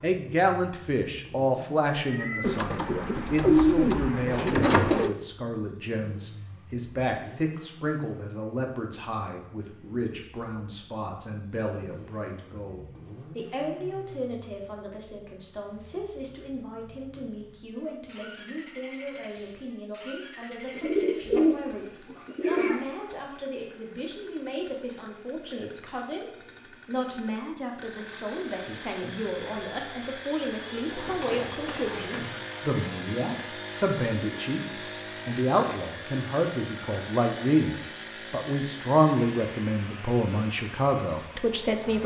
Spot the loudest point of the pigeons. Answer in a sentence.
The volume of the pigeons peaks at 4 seconds.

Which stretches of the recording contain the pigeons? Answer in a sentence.
You can hear the pigeons from 2.4 to 5.2 s, from 20.8 to 22.8 s and from 30.8 to 32.5 s.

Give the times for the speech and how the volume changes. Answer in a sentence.
You can hear the speech from 0.0 to 42.0 s, getting quieter then louder.